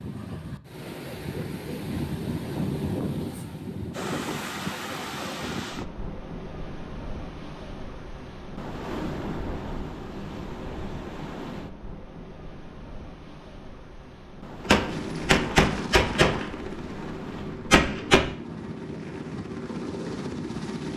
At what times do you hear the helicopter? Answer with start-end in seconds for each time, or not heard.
14.8-20.9.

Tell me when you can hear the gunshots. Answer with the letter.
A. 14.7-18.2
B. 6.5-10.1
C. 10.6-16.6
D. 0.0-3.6
A.